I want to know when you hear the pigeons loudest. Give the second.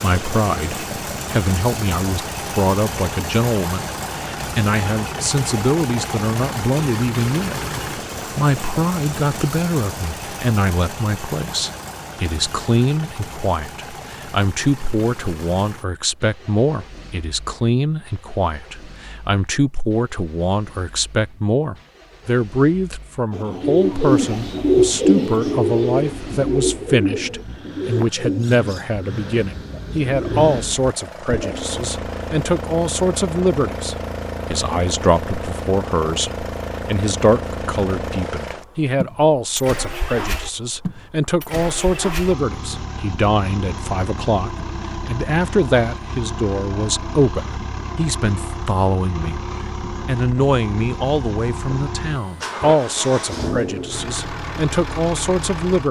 25 s.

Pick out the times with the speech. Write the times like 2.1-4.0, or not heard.
0.0-49.4, 50.0-55.8.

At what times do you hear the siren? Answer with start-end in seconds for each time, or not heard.
not heard.